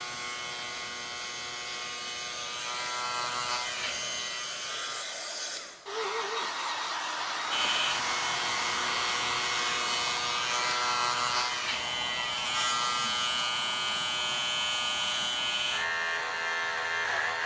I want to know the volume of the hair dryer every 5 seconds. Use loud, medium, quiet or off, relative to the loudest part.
medium, loud, medium, medium.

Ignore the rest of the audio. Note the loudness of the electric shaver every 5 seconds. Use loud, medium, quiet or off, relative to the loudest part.
medium, loud, loud, loud.